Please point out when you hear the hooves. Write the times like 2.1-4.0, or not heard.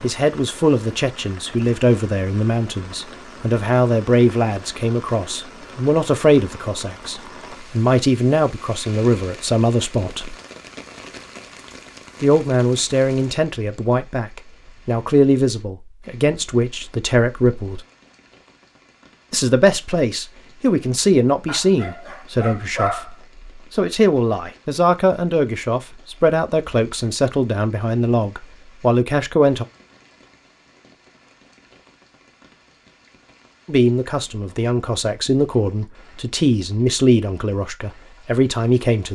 not heard.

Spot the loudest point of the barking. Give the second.
23 s.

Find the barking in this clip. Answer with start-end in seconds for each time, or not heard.
21.4-23.1.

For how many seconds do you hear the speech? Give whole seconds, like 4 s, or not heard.
32 s.